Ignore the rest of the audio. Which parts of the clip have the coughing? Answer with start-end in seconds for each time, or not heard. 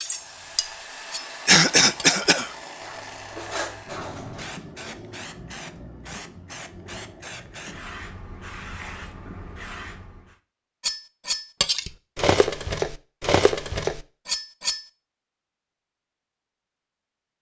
1.4-2.5.